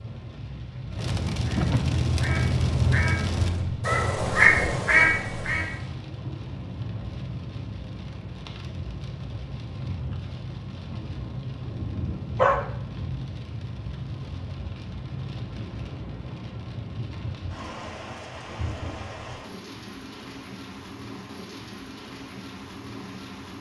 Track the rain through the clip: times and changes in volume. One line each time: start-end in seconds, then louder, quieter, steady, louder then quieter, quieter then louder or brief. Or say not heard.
0.0-23.5 quieter.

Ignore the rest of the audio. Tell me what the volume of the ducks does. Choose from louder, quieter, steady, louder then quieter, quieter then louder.
louder.